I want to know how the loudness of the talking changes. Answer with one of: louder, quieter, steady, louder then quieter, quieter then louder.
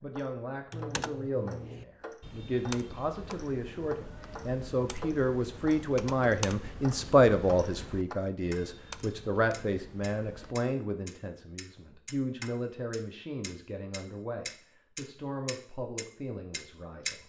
louder then quieter.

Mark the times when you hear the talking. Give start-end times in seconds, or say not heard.
0.0-17.2.